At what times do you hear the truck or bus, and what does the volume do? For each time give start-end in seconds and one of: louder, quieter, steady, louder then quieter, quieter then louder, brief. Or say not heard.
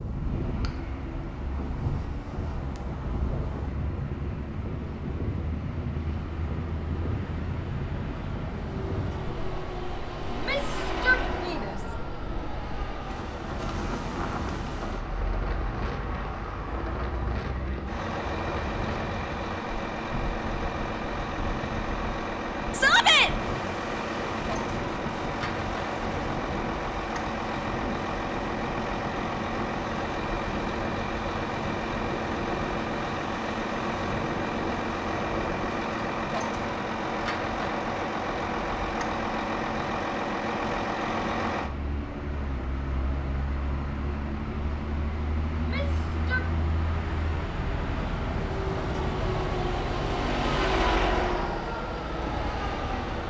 0.0-53.2 louder.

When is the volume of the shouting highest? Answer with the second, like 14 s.
23 s.